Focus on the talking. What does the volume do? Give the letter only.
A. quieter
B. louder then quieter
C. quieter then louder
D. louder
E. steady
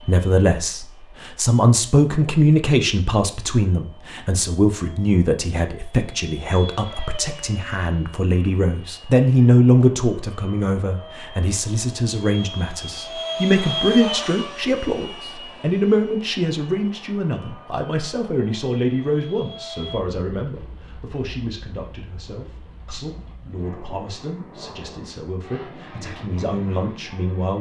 A.